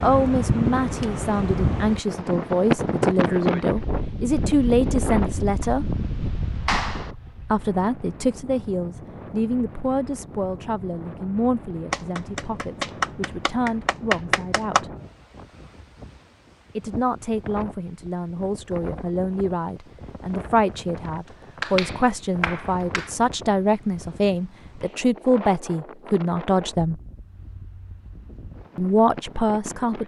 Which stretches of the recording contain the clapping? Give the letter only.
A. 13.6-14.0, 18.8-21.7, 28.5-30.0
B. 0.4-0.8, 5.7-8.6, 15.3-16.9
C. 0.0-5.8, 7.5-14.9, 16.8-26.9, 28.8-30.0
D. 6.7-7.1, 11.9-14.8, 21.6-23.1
D.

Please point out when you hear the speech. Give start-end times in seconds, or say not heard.
0.0-5.8, 7.5-14.9, 16.8-26.9, 28.8-30.0.